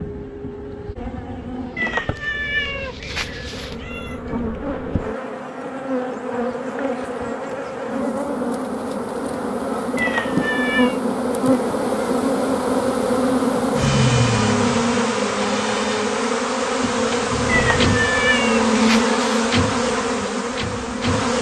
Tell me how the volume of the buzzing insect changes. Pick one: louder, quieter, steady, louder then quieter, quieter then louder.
louder.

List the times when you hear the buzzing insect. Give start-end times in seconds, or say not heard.
0.0-21.3.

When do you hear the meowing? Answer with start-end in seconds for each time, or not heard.
1.8-4.4, 9.9-11.0, 17.4-19.4.